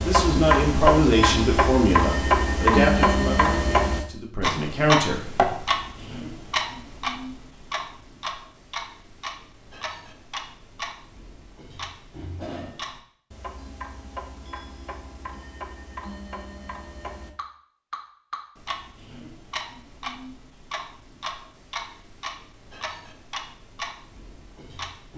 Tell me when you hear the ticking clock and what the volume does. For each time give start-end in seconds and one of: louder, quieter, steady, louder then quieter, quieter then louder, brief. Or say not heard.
0.0-25.1 quieter.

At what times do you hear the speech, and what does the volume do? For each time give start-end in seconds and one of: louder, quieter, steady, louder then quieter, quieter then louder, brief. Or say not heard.
0.1-5.5 quieter then louder.